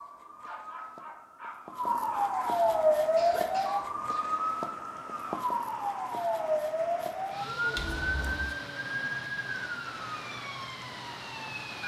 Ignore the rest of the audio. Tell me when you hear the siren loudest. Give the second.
3 s.